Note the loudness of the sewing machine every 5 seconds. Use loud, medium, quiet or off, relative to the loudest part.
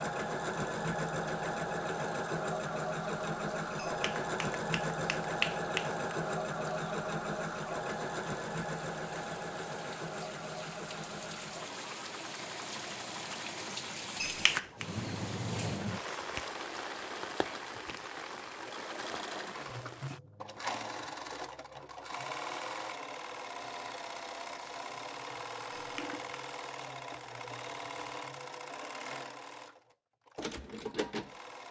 loud, loud, medium, medium, medium, medium, medium.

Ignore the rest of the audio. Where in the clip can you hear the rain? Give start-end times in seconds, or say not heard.
0.1-20.2.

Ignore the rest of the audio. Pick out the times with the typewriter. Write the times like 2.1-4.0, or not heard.
not heard.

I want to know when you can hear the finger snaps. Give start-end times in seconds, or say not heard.
3.8-6.2, 14.2-14.8, 25.8-26.4.